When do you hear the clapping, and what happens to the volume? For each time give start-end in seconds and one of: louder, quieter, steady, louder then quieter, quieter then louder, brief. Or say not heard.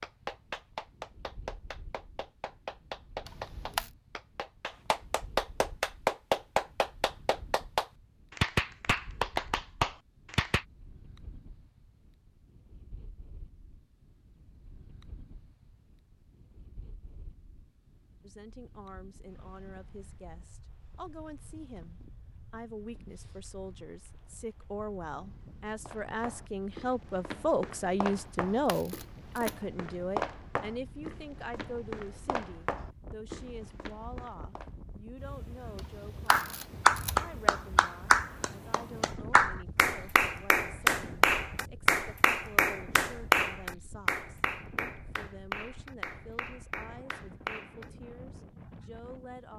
0.0-10.7 louder
36.2-47.9 quieter.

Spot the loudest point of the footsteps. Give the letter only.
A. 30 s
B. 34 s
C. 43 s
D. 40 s
A.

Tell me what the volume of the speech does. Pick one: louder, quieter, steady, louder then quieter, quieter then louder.
louder then quieter.